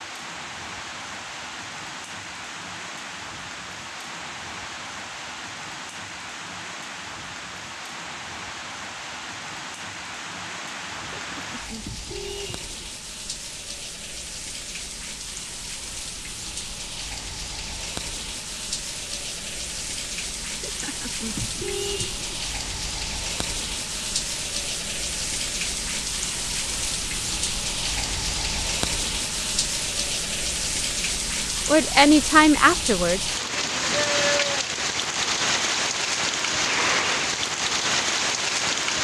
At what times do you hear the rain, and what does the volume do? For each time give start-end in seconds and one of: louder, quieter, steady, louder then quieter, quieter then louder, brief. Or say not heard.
0.0-38.9 louder.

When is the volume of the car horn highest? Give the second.
22 s.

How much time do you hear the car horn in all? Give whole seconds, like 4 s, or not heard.
4 s.